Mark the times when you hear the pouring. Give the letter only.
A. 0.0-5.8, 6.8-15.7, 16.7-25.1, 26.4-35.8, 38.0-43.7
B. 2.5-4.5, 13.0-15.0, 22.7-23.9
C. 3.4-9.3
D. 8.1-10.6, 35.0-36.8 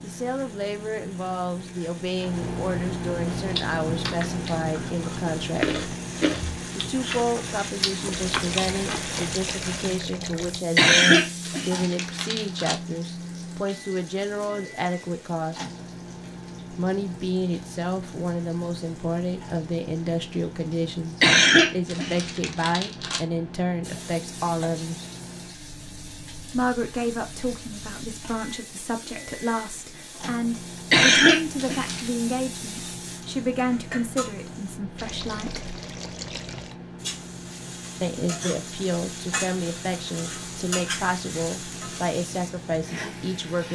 D.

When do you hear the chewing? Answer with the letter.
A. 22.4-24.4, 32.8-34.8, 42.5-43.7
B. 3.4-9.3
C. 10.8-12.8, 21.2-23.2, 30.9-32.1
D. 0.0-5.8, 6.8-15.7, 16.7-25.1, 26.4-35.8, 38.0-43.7
B.